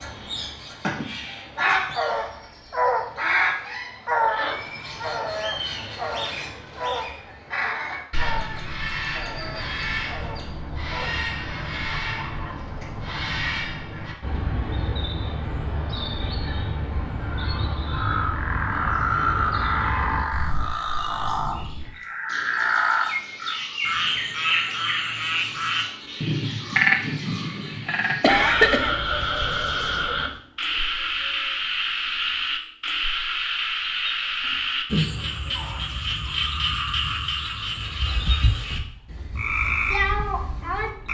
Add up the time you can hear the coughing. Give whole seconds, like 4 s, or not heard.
2 s.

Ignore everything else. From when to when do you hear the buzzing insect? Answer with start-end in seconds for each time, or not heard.
not heard.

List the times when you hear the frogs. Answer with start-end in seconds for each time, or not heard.
17.9-41.1.